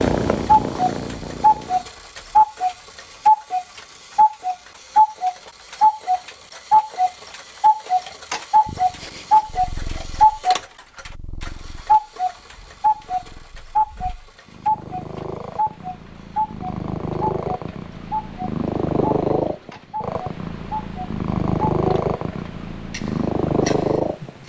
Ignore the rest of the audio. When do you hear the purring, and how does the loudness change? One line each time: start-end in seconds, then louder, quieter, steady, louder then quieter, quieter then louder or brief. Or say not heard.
0.0-1.9 brief
8.7-24.4 louder.